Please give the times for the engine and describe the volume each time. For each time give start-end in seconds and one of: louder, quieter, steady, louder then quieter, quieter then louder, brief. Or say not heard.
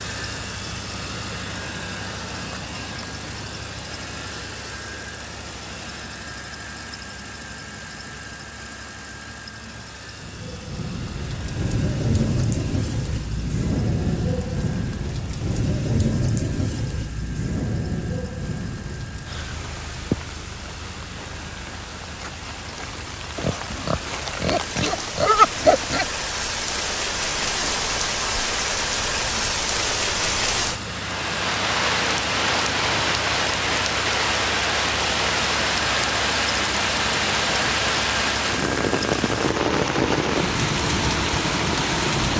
0.0-42.3 quieter then louder.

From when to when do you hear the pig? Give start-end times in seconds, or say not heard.
23.4-26.1.